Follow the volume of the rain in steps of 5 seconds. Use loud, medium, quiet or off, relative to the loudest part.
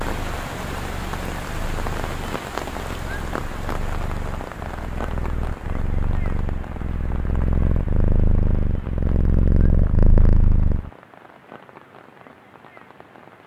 loud, medium, quiet.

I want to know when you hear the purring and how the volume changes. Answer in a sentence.
The purring can be heard from 0.0 to 10.9 s, getting louder.